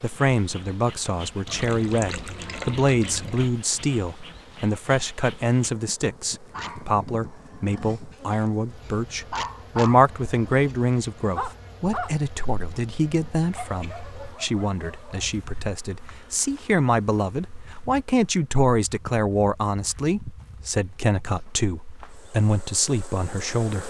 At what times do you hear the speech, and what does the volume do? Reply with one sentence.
You can hear the speech from 0.0 to 23.8 s, at a steady volume.